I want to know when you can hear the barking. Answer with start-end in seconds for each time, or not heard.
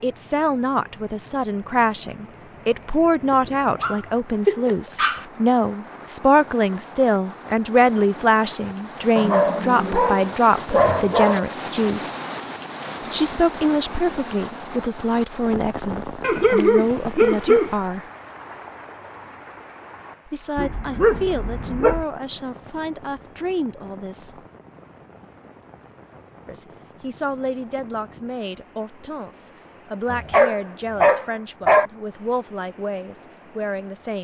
3.3-5.2, 9.2-11.4, 16.2-17.8, 20.6-22.1, 30.1-31.9.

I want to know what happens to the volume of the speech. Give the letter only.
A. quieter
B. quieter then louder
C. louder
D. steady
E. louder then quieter
A.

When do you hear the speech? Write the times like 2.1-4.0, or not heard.
0.0-12.2, 13.1-18.1, 20.2-24.4, 26.4-34.1.